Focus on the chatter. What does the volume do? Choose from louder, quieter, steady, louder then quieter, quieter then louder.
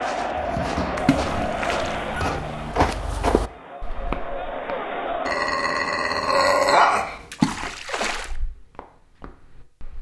quieter then louder.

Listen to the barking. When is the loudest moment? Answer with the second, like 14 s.
7 s.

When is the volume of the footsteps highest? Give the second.
3 s.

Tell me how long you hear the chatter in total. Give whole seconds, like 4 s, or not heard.
5 s.